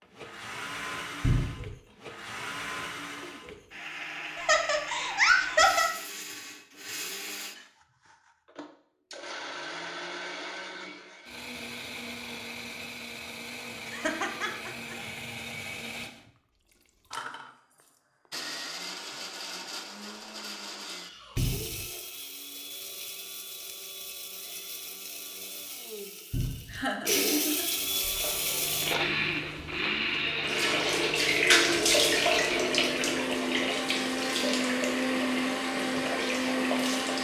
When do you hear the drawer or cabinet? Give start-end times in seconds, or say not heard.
1.2-1.8, 21.4-21.9, 26.3-26.8.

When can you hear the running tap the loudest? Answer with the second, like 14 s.
32 s.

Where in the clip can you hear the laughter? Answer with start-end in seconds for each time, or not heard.
4.3-5.8, 13.8-14.9, 26.7-27.7.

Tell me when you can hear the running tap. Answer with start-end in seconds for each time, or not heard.
27.8-37.1.